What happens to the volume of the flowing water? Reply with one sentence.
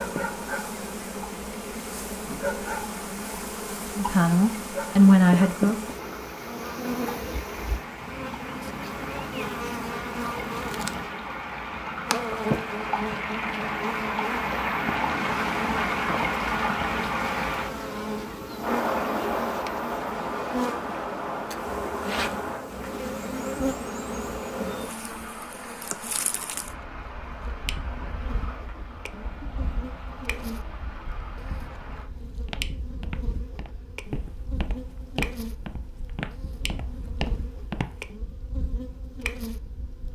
The volume of the flowing water goes up, then down.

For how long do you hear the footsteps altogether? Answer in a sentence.
The footsteps can be heard for 6 seconds in total.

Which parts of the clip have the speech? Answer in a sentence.
You can hear the speech from 4.0 to 5.8 s.